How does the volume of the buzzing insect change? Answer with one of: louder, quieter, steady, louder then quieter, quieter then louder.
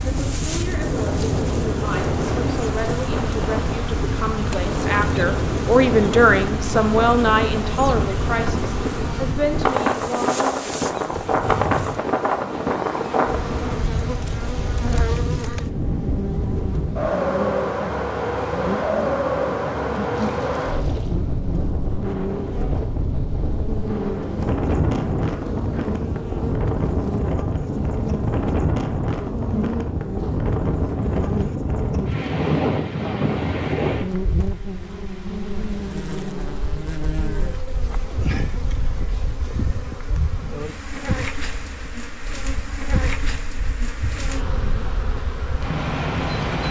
steady.